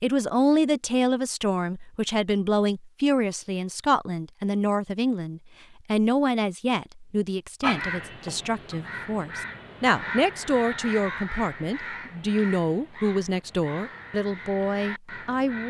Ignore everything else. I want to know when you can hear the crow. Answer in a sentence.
You can hear the crow from 7.6 to 15.6 s.